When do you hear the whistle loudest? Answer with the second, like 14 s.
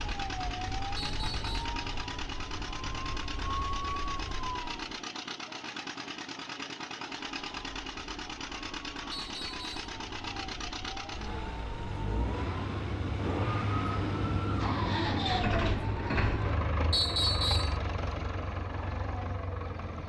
17 s.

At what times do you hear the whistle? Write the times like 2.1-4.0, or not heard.
0.9-1.7, 9.1-9.8, 16.9-17.8.